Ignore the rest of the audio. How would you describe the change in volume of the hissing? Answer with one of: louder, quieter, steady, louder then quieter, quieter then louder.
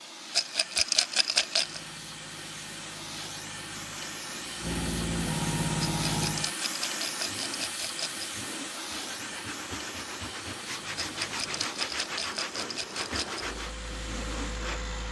louder then quieter.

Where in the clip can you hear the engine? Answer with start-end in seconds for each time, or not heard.
1.5-6.5, 10.7-15.0.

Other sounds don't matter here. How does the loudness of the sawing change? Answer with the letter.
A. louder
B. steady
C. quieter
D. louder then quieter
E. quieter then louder
A.